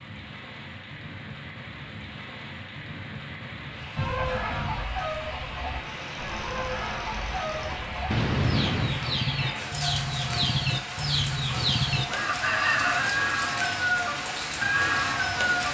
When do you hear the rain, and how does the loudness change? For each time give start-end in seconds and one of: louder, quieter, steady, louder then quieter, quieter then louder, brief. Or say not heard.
0.0-15.7 louder.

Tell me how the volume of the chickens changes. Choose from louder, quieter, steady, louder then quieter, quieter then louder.
louder.